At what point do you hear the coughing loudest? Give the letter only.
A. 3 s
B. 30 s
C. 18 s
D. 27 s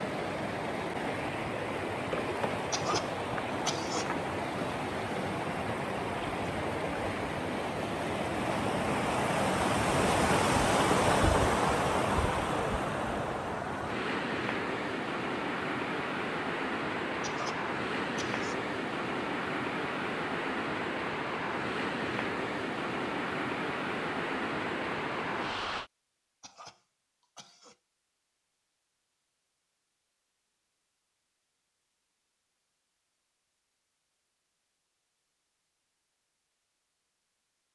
A.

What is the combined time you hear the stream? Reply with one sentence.
The stream can be heard for 26 seconds in total.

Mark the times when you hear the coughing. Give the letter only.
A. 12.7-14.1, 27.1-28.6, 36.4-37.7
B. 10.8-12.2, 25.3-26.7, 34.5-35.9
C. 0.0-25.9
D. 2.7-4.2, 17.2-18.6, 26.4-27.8
D.